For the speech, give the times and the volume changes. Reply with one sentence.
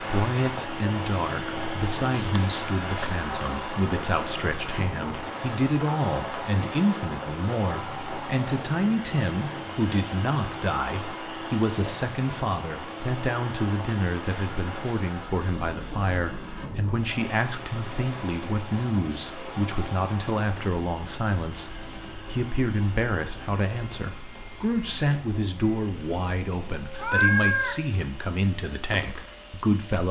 You can hear the speech from 0.0 to 30.0 s, at a steady volume.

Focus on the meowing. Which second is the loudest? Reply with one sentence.
The volume of the meowing peaks at 27 seconds.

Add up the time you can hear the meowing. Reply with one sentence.
The meowing can be heard for 2 seconds in total.